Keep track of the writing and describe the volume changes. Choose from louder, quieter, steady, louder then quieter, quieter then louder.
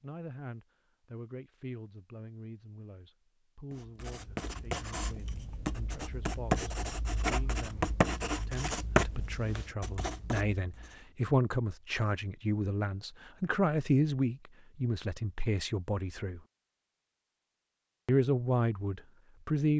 louder then quieter.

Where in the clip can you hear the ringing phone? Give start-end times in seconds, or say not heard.
not heard.